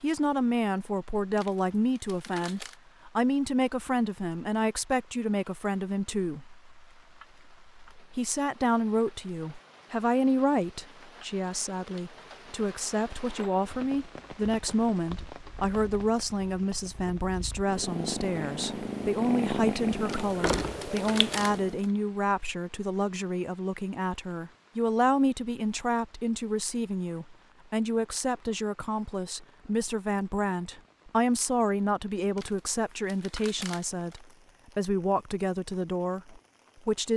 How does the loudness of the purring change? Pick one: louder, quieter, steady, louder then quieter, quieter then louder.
louder.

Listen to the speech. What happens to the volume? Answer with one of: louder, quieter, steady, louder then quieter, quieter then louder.
steady.